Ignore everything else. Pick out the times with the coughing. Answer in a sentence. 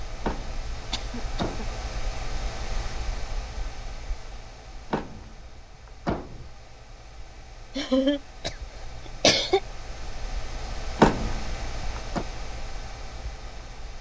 You can hear the coughing from 0.9 to 1.4 s and from 7.8 to 9.6 s.